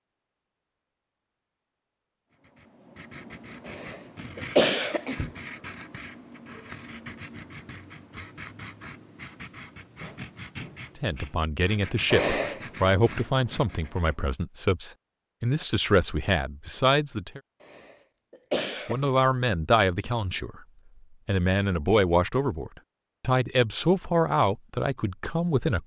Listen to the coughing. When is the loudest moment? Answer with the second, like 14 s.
5 s.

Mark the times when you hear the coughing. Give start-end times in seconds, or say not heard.
3.6-5.3, 12.1-12.7, 17.6-19.1.